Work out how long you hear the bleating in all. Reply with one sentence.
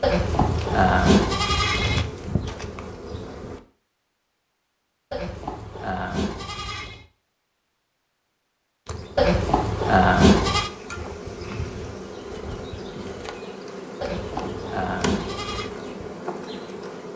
You can hear the bleating for 7 seconds altogether.